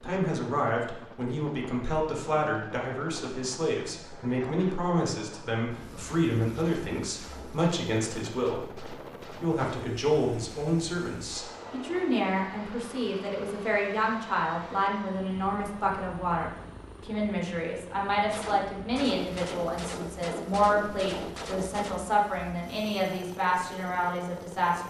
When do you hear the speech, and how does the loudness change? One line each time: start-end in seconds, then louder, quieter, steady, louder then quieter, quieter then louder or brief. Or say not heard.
0.0-24.8 steady.